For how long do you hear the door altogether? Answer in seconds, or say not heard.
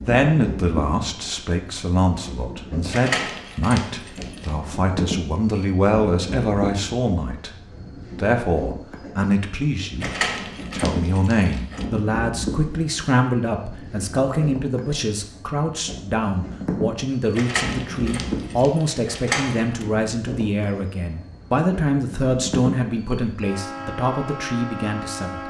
6 s.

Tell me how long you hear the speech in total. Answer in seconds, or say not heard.
25 s.